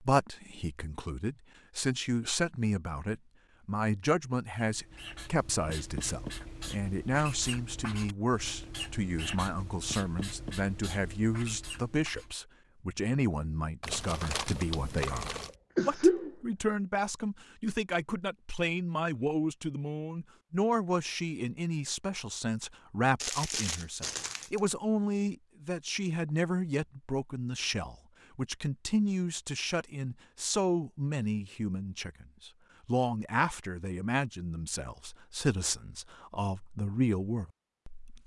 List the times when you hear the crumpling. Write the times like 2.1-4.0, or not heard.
13.8-15.6, 23.2-24.7.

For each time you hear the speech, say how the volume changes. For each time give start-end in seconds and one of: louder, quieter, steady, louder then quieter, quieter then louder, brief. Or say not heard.
0.0-38.2 steady.